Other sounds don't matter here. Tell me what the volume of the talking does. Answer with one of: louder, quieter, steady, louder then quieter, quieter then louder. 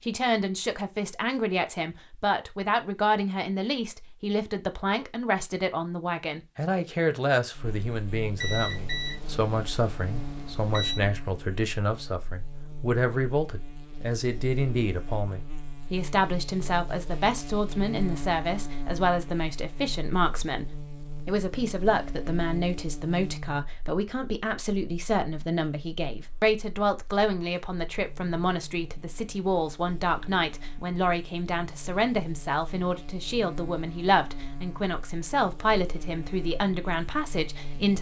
steady.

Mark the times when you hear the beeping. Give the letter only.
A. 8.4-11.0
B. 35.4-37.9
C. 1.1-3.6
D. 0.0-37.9
A.